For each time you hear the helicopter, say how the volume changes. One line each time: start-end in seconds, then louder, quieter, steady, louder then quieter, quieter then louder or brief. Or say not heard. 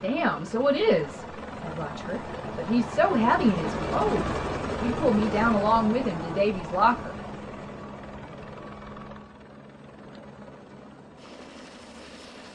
0.0-12.5 louder then quieter.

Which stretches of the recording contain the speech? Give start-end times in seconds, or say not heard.
0.0-7.2.